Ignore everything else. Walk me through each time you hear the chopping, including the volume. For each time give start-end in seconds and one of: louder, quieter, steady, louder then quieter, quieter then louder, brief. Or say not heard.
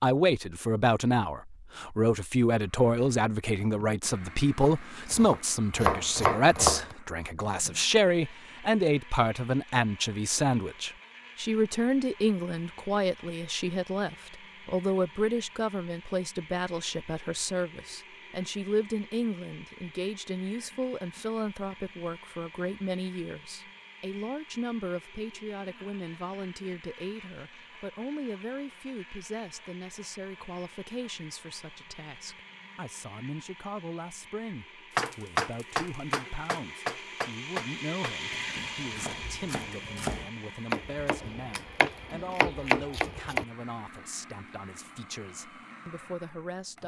4.6-7.0 brief
35.0-43.5 quieter then louder.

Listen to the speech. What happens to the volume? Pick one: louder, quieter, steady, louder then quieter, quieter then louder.
quieter.